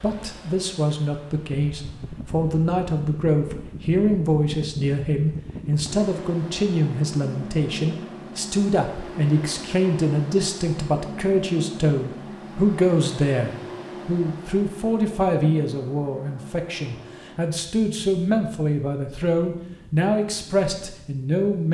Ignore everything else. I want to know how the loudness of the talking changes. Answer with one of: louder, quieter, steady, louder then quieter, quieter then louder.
steady.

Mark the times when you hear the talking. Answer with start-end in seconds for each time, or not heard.
0.0-21.6.